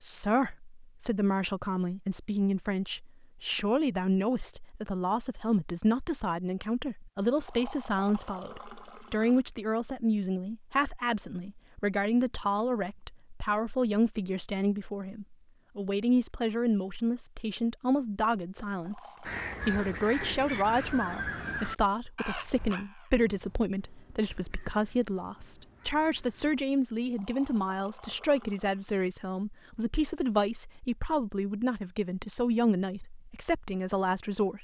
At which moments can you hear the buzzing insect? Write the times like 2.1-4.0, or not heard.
not heard.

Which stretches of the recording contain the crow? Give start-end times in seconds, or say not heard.
19.2-26.6.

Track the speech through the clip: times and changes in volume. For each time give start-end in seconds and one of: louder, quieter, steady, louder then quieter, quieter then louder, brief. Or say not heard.
0.0-34.5 steady.